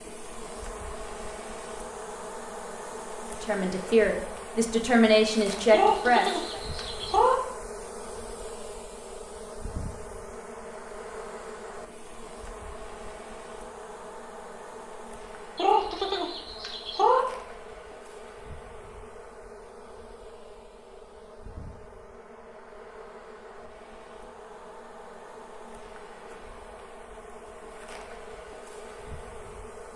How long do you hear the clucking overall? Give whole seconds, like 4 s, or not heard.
3 s.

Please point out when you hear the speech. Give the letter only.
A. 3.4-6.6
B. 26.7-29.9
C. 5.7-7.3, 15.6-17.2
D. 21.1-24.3
A.